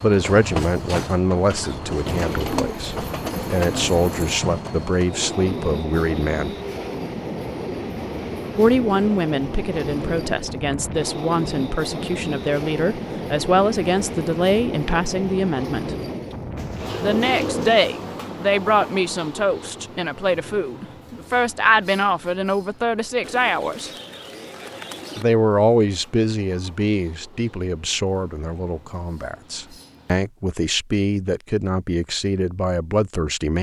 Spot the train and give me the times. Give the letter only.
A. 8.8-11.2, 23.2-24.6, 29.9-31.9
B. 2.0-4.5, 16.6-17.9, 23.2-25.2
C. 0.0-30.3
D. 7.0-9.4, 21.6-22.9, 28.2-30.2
C.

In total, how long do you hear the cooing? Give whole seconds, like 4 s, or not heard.
6 s.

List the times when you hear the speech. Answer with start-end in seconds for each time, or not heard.
0.0-6.5, 8.6-15.9, 16.9-23.9, 25.1-33.5.